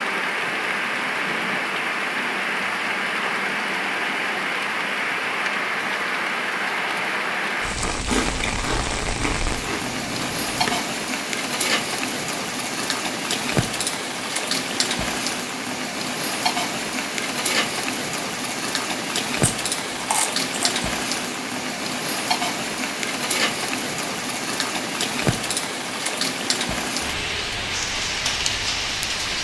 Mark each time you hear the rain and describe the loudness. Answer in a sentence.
You can hear the rain from 0.0 to 29.3 s, at a steady volume.